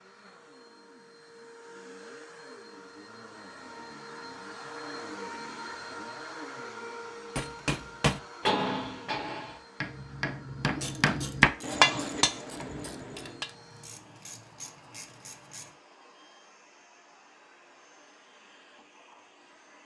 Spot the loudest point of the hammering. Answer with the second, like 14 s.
12 s.